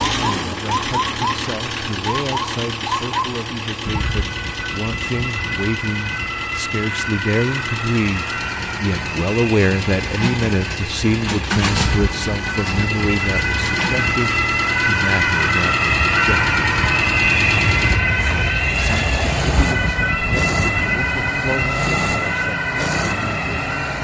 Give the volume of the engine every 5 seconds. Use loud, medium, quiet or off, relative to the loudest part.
loud, medium, loud, loud, loud.